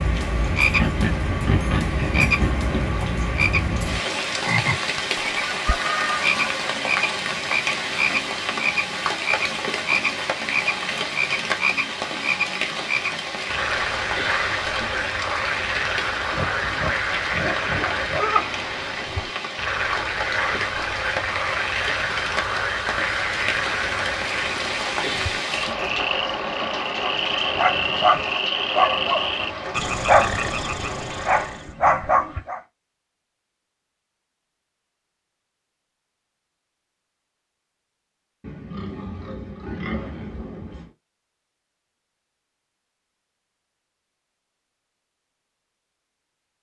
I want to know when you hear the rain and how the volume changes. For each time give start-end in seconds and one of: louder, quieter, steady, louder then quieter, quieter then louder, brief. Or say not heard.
0.0-31.6 steady.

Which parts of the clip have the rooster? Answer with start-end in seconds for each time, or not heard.
5.5-6.6.